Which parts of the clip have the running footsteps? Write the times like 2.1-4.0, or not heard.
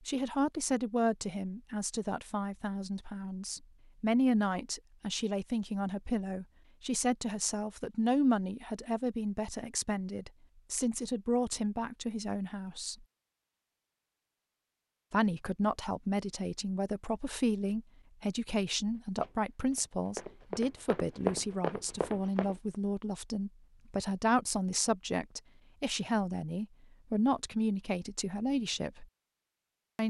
18.9-22.6.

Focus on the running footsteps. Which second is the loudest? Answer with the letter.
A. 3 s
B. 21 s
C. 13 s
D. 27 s
B.